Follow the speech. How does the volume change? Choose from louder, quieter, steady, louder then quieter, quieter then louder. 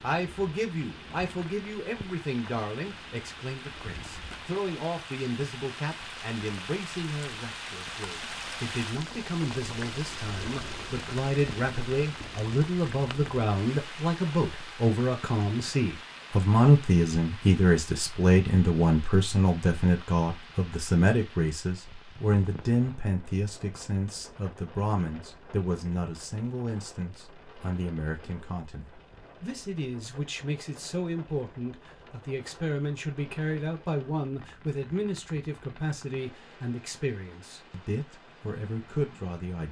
louder then quieter.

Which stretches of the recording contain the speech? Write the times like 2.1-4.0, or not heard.
0.0-39.6.